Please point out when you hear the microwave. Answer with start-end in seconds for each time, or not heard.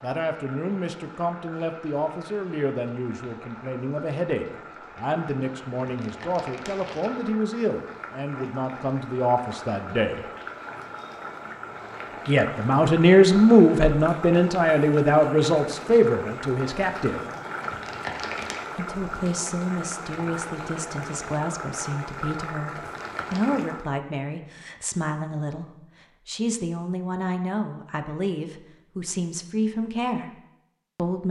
not heard.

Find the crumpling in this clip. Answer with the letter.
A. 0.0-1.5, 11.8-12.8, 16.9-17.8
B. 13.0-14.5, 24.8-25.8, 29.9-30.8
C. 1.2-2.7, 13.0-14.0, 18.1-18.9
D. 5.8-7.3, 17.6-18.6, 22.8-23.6
D.